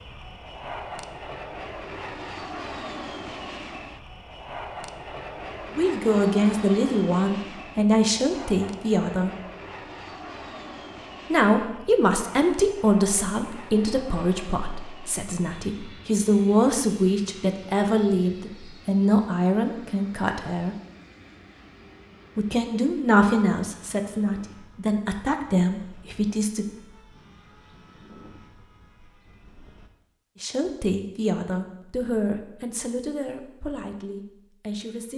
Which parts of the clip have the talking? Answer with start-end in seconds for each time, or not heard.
5.8-9.3, 11.3-20.8, 22.4-26.6, 30.4-35.1.